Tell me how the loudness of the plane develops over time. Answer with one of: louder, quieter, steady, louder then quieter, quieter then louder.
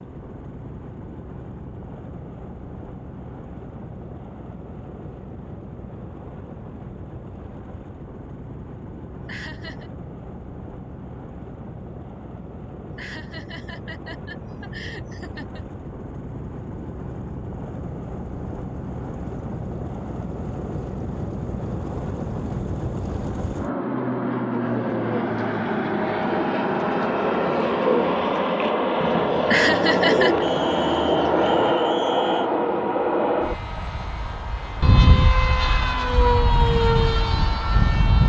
louder.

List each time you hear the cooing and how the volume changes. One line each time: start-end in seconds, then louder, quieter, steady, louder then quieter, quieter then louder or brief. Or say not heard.
24.6-31.8 louder.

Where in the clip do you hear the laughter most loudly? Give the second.
30 s.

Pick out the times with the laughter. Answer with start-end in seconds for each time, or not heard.
9.2-9.9, 12.9-15.7, 29.4-30.4.